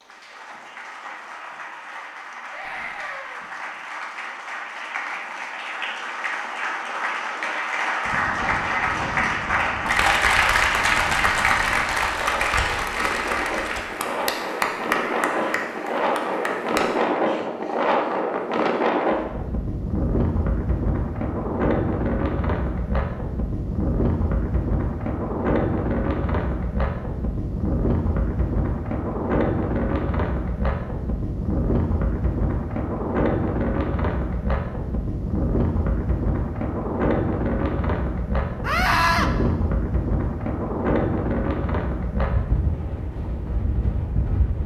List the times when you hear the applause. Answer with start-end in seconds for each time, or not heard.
0.0-17.0.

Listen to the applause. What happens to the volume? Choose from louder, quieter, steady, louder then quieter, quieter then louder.
louder then quieter.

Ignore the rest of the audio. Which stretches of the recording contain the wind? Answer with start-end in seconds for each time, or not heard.
8.0-44.6.